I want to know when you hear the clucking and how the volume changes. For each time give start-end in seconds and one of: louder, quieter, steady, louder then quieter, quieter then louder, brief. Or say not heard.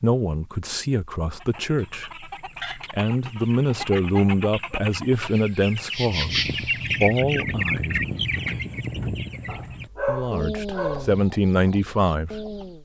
1.4-12.8 louder then quieter.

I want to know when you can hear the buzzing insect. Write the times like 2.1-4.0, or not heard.
5.3-7.2.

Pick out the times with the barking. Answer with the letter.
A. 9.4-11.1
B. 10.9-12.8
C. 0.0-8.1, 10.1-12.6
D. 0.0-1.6
A.